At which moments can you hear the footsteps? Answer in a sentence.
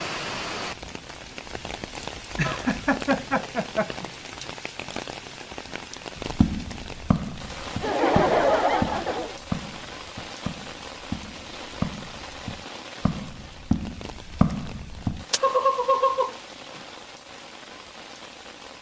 The footsteps can be heard from 6.2 to 15.4 s.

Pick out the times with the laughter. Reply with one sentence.
The laughter can be heard from 2.4 to 4.0 s, from 7.8 to 9.3 s and from 15.4 to 16.8 s.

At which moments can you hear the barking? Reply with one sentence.
The barking can't be heard in this clip.